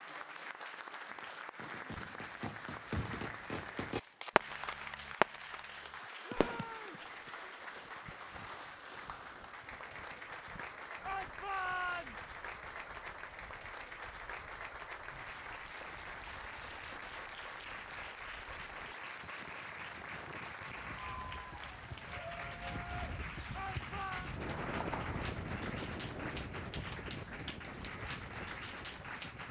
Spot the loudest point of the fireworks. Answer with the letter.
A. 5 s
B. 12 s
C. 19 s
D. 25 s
A.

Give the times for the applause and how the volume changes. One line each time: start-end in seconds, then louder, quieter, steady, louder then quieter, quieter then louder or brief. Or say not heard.
0.0-29.4 steady.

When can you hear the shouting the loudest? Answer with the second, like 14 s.
12 s.